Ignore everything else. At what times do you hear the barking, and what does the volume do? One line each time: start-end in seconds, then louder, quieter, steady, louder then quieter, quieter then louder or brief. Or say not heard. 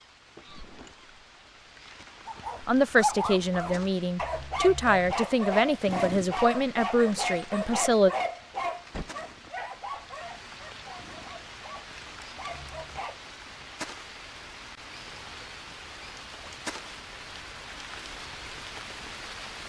2.2-13.2 quieter.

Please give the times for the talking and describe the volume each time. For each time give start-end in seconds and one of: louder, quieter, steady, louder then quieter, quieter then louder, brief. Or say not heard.
2.6-8.1 steady.